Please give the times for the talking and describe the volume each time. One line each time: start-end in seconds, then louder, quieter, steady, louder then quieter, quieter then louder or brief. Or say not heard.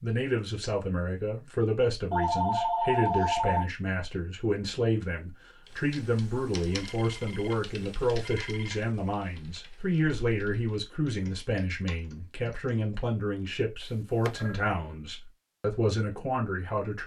0.0-17.0 steady.